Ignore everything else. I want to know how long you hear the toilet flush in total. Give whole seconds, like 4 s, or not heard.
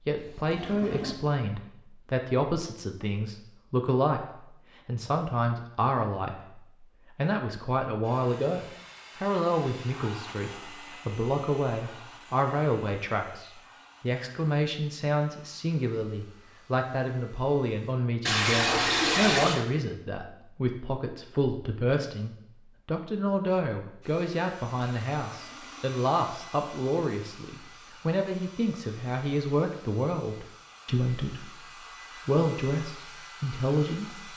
4 s.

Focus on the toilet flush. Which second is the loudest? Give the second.
19 s.